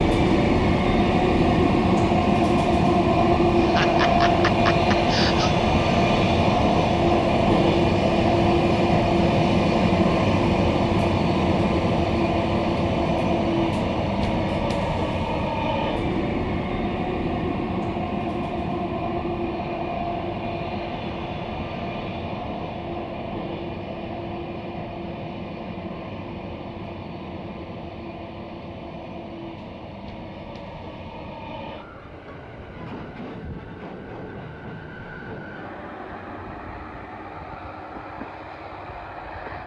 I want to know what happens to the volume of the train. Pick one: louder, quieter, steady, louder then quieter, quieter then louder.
quieter.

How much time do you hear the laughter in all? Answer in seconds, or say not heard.
2 s.